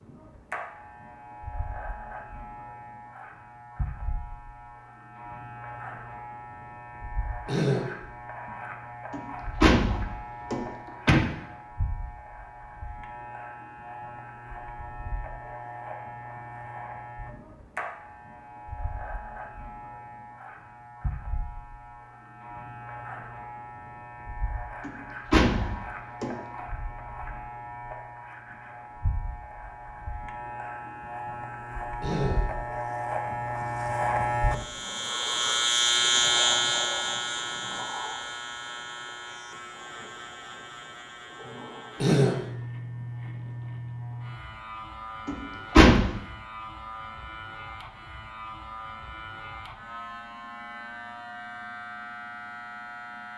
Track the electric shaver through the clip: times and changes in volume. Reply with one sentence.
The electric shaver can be heard from 0.0 to 53.3 s, getting louder then quieter.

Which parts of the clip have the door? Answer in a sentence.
The door can be heard from 9.1 to 11.2 s, from 24.8 to 26.4 s and from 45.2 to 46.1 s.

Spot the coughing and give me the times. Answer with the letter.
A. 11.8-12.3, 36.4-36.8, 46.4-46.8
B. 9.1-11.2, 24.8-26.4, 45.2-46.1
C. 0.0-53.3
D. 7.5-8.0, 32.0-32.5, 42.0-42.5
D.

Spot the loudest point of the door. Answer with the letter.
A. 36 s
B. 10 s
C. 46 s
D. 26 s
C.